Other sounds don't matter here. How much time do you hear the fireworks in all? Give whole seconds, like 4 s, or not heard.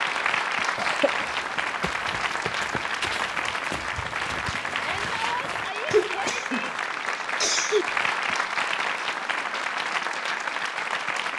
not heard.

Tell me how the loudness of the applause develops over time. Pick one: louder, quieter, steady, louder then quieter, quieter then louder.
steady.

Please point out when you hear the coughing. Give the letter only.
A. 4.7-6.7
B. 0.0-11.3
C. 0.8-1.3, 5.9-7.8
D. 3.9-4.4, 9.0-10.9
C.